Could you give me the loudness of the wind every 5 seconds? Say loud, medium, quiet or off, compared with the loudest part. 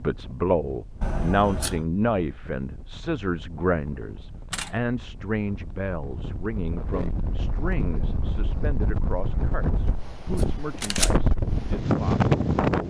quiet, medium, loud.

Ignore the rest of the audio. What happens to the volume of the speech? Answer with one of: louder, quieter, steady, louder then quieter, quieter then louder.
quieter.